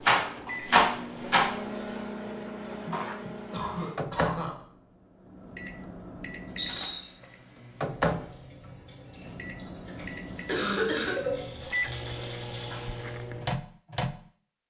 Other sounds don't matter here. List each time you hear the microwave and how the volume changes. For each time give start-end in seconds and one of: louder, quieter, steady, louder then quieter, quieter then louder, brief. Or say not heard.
0.0-14.2 quieter then louder.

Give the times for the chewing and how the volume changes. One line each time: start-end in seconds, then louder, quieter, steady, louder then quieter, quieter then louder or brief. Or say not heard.
not heard.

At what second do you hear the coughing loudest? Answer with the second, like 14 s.
11 s.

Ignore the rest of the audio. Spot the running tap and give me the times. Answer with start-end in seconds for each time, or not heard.
6.2-13.3.